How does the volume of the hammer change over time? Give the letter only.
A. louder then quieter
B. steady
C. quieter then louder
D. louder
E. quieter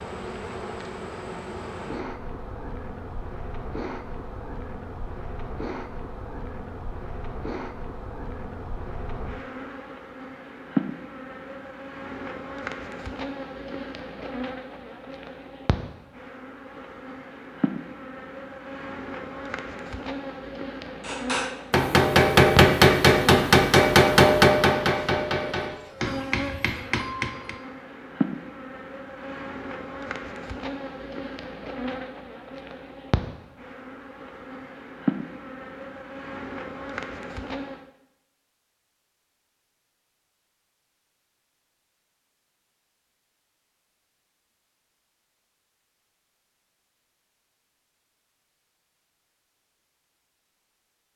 E.